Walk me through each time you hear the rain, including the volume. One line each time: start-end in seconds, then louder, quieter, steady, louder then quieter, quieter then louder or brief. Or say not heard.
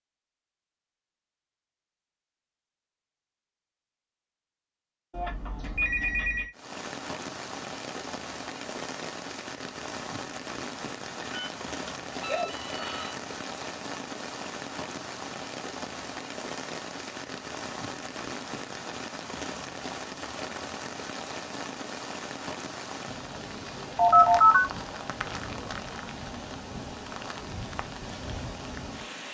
6.5-29.2 steady.